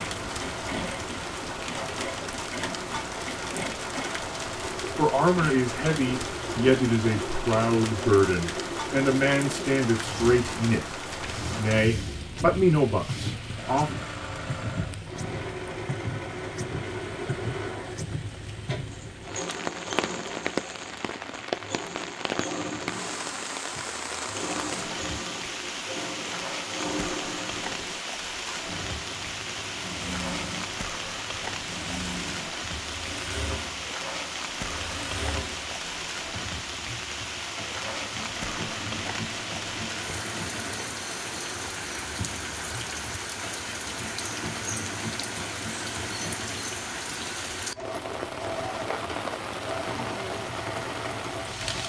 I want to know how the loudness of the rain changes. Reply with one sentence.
The volume of the rain stays about the same.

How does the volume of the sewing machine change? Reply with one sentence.
The volume of the sewing machine stays about the same.